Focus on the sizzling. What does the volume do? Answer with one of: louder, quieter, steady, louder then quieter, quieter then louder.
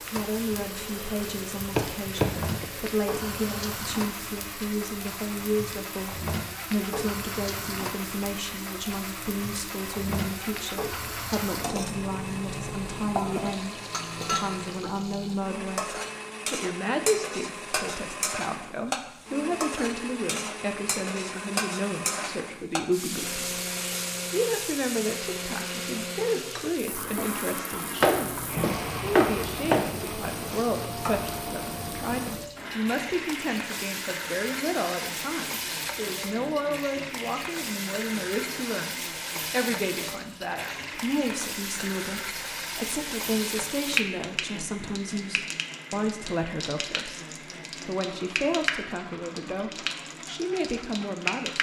steady.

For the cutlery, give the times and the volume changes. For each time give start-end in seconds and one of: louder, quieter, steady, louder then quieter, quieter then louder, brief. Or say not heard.
not heard.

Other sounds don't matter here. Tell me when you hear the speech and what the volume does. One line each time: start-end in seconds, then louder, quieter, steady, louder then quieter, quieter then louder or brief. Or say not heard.
0.1-23.6 steady
24.3-51.5 steady.